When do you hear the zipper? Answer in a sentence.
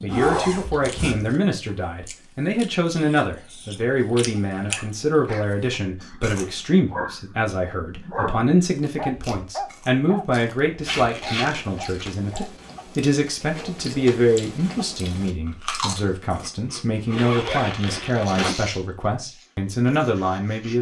The zipper can be heard from 0.1 to 1.4 s, from 10.8 to 12.1 s and from 17.1 to 18.6 s.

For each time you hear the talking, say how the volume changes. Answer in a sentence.
The talking can be heard from 0.0 to 20.7 s, at a steady volume.